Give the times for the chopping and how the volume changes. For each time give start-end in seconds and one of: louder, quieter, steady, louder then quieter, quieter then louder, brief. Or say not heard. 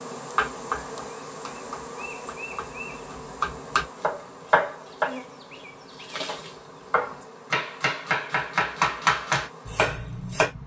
0.3-10.5 louder.